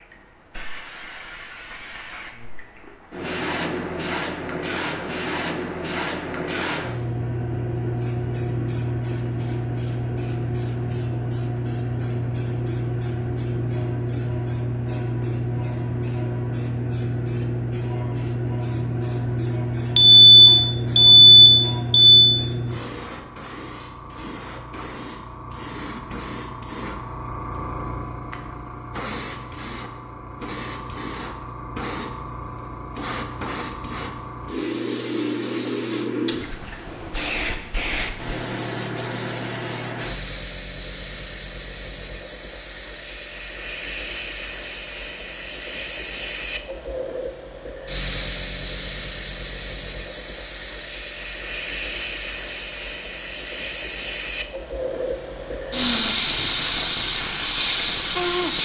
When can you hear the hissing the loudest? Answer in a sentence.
The loudest moment of the hissing is at 56 seconds.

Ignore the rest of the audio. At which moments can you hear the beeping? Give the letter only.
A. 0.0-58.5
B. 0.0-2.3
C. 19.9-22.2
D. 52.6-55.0
C.